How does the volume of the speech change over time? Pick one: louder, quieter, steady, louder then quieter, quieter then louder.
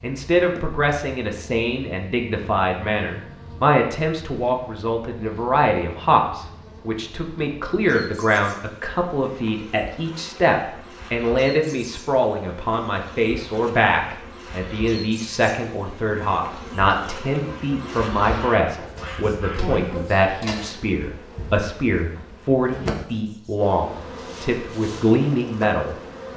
steady.